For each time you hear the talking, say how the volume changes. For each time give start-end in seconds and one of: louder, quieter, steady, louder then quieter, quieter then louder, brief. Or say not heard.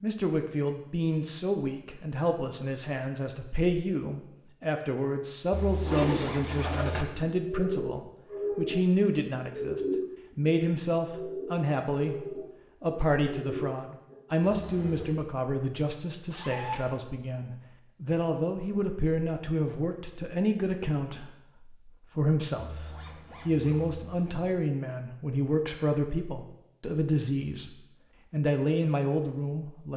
0.0-29.9 steady.